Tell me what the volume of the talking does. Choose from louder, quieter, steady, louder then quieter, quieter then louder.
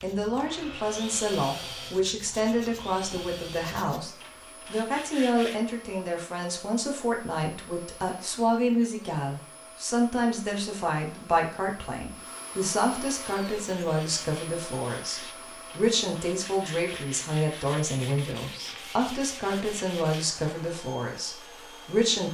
steady.